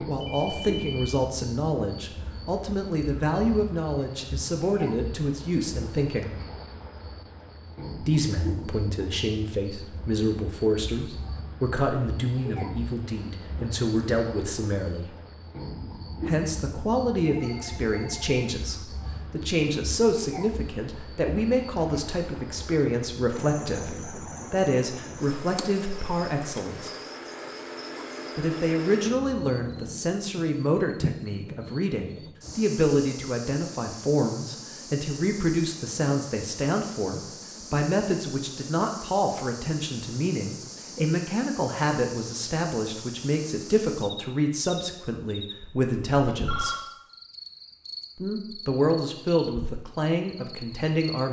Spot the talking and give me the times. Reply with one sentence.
You can hear the talking from 0.1 to 6.3 s, from 8.0 to 15.2 s, from 16.2 to 26.9 s, from 28.4 to 46.8 s and from 48.1 to 51.2 s.